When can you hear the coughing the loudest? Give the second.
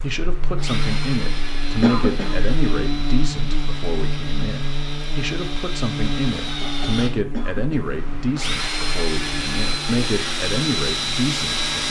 2 s.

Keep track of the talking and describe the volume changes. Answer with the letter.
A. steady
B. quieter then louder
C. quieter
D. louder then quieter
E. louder
A.